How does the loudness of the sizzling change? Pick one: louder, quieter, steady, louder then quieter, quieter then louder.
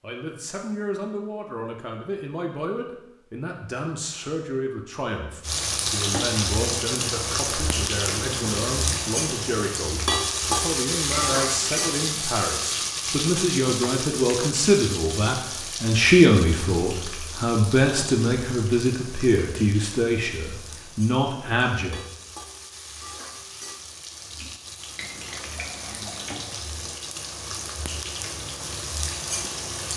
quieter then louder.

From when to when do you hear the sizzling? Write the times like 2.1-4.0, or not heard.
5.4-29.9.